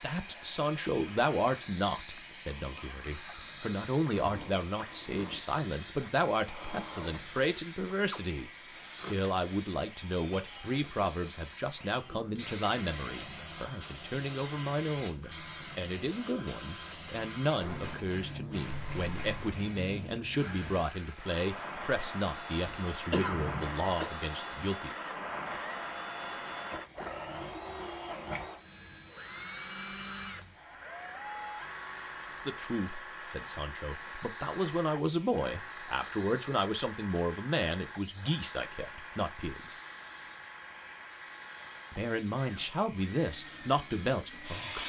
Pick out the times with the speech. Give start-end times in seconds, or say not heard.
0.0-24.9, 32.4-39.8, 41.9-44.8.